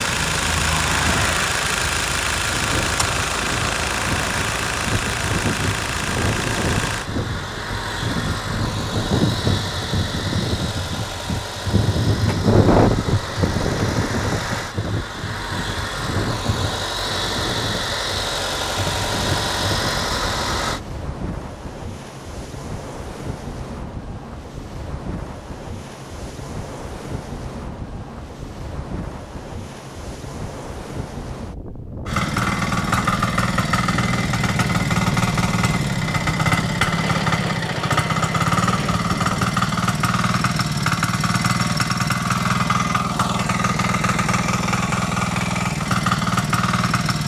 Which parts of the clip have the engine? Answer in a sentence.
The engine can be heard from 0.0 to 20.8 s and from 32.0 to 47.2 s.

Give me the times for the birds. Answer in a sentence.
You can't hear the birds here.